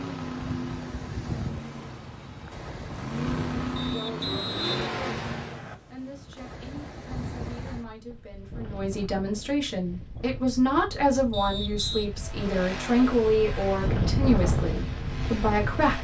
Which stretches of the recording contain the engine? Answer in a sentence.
You can hear the engine from 0.0 to 5.6 s and from 12.1 to 15.9 s.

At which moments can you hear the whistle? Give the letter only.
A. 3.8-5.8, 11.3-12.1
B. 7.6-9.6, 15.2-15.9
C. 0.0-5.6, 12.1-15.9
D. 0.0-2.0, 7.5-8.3
A.